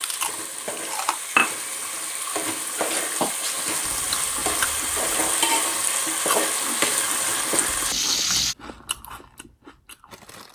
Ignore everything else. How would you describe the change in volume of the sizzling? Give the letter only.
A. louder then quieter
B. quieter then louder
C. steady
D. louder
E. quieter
D.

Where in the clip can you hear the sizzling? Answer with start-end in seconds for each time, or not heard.
0.0-8.6.